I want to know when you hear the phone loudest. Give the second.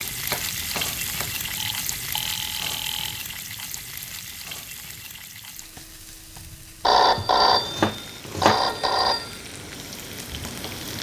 7 s.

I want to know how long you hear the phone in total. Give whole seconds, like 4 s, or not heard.
4 s.